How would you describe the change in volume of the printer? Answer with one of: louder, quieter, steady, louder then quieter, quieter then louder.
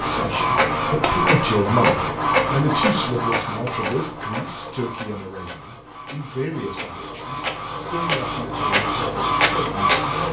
quieter then louder.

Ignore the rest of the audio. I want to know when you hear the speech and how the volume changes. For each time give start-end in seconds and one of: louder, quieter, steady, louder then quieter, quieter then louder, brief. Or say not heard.
0.0-10.2 quieter.